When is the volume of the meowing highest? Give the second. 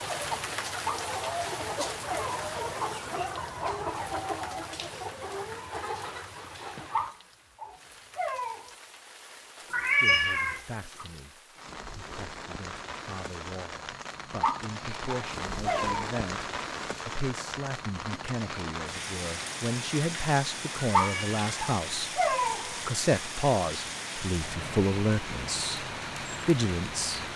10 s.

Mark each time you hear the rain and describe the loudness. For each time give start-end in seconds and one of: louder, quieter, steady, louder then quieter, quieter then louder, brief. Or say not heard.
0.0-27.3 quieter then louder.